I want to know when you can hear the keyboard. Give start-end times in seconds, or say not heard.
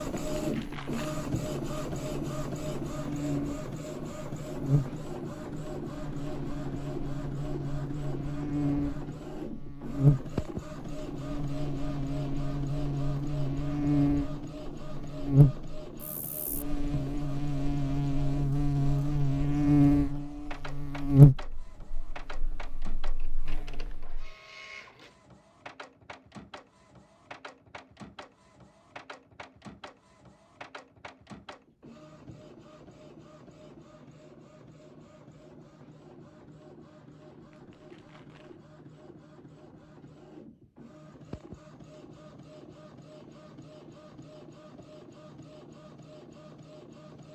not heard.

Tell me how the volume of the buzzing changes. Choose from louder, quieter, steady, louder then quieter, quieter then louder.
louder.